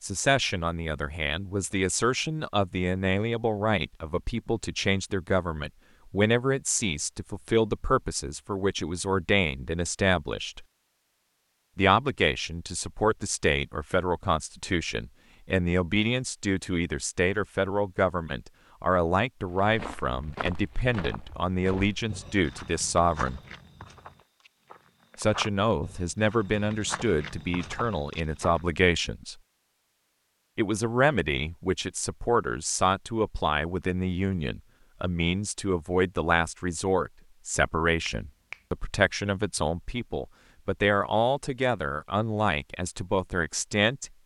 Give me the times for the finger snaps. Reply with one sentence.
The finger snaps can be heard from 38.0 to 38.6 s.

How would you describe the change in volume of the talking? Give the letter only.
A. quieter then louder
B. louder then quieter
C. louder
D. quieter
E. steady
E.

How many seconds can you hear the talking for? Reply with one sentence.
You can hear the talking for 40 seconds altogether.